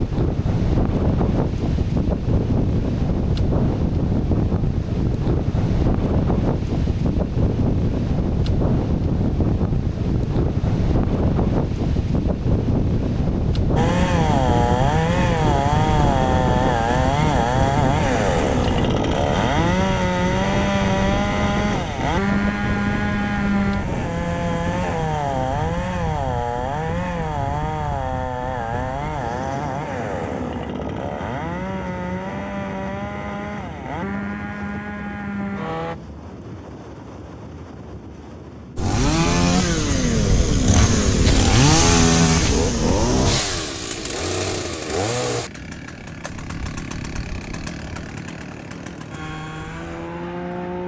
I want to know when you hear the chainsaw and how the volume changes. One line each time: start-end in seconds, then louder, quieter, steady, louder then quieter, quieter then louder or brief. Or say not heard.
13.8-36.0 quieter
38.8-50.8 quieter.